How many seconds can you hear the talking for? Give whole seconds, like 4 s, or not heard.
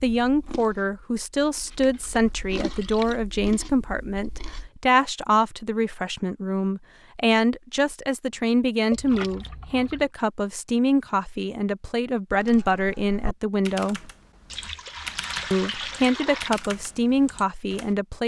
17 s.